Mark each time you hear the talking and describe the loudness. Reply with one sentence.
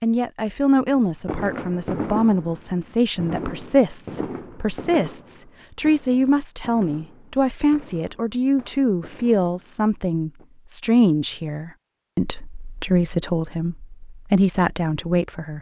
The talking can be heard from 0.0 to 15.5 s, at a steady volume.